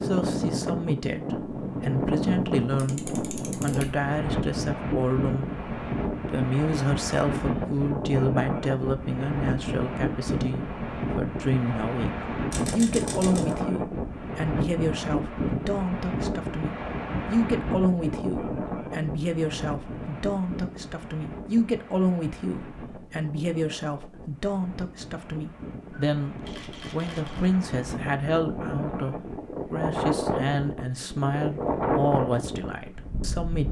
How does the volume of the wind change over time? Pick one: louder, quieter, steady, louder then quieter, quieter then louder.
quieter then louder.